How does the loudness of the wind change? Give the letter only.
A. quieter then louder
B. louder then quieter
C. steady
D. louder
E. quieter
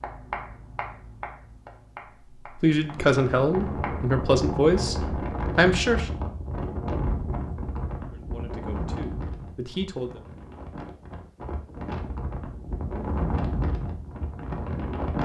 A.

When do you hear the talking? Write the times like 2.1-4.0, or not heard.
2.5-6.2, 8.1-10.2.